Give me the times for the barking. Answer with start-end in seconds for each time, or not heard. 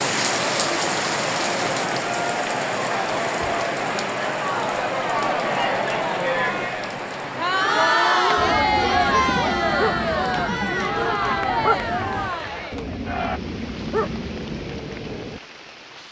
8.3-15.4.